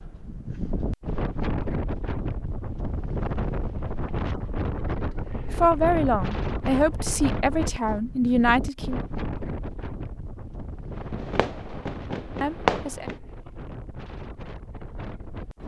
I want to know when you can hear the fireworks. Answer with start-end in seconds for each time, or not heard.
10.9-13.2.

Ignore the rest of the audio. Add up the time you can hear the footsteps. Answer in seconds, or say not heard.
not heard.